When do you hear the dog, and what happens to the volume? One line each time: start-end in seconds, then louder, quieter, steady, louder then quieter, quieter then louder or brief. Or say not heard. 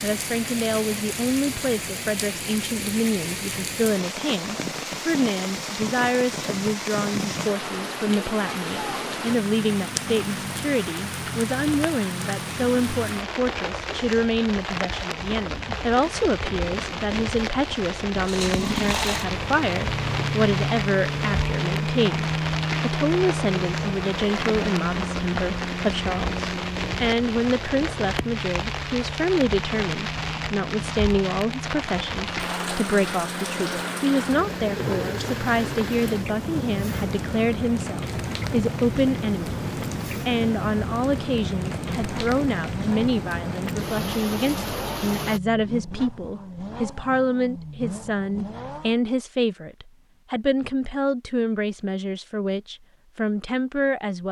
not heard.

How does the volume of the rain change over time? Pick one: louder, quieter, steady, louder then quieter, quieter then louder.
steady.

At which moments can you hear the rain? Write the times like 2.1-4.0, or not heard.
0.0-45.4.